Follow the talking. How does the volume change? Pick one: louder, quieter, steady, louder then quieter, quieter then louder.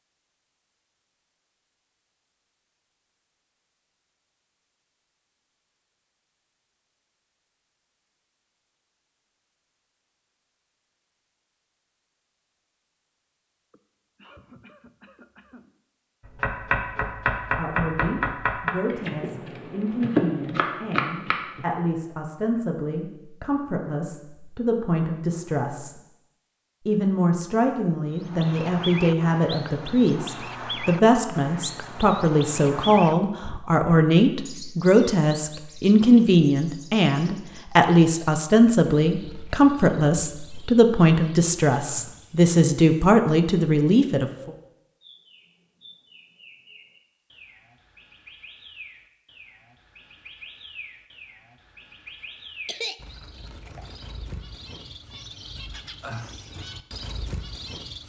louder.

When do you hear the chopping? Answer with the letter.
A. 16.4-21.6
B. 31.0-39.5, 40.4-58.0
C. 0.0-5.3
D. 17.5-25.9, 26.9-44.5
A.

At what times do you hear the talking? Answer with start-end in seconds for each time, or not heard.
17.5-25.9, 26.9-44.5.